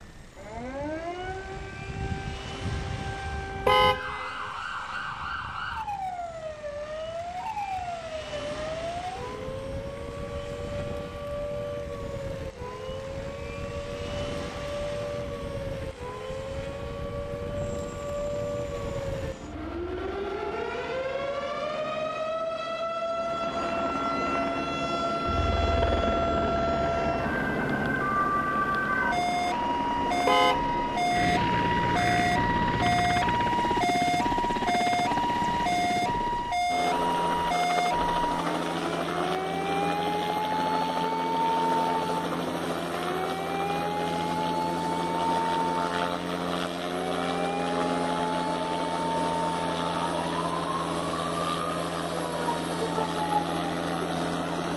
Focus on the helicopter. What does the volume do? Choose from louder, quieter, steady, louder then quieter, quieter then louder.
louder.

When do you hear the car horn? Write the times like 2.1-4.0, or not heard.
3.6-4.5, 30.2-31.0.